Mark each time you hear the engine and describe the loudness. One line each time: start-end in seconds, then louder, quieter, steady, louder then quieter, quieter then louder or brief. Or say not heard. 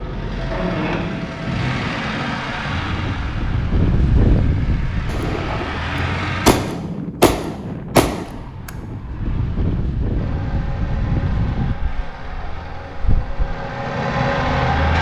0.0-6.5 quieter then louder
10.2-14.9 louder.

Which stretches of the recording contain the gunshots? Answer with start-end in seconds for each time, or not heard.
5.0-8.7.